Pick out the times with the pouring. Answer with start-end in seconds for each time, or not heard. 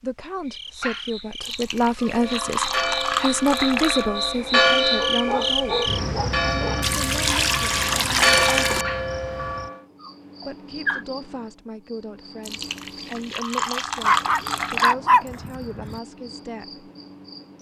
1.4-4.0, 6.8-8.8, 12.4-14.9.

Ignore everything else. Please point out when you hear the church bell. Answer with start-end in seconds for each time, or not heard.
2.0-9.8.